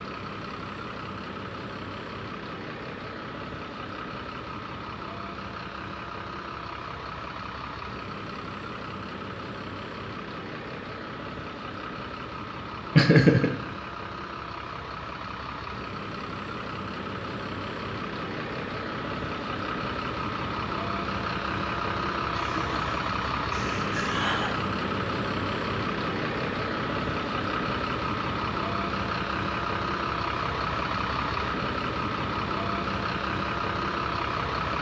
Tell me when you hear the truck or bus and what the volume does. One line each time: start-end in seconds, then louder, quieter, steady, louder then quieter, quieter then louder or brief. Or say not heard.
0.0-34.7 louder.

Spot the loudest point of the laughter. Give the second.
13 s.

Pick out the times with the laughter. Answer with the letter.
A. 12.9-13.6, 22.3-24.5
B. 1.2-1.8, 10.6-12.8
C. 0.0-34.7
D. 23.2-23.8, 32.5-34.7
A.